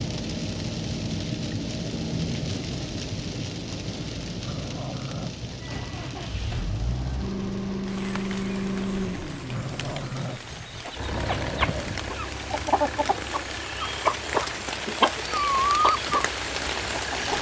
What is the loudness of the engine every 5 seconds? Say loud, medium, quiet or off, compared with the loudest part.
off, loud, medium, medium.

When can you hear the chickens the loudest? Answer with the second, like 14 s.
16 s.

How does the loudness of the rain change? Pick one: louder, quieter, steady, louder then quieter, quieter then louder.
quieter then louder.